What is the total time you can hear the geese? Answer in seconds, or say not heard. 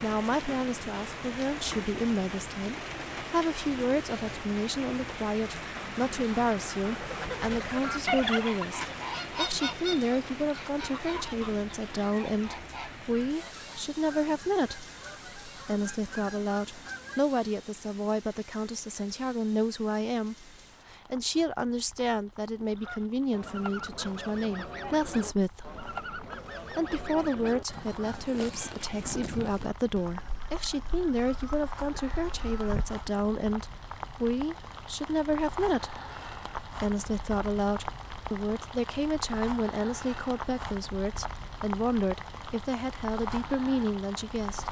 21 s.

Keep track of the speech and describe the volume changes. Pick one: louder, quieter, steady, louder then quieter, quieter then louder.
steady.